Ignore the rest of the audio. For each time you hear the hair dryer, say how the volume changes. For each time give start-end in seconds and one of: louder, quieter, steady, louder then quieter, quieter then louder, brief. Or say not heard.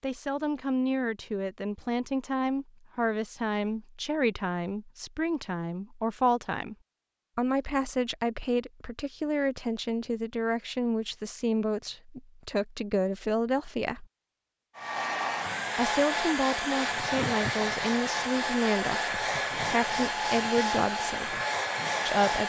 14.8-22.4 steady.